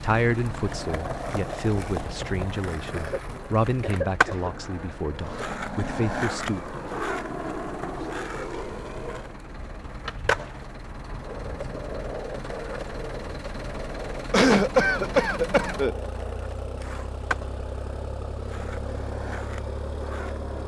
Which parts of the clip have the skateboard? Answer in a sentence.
You can hear the skateboard from 0.0 to 20.6 s.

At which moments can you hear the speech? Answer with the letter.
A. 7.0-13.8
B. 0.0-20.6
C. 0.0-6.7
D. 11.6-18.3
C.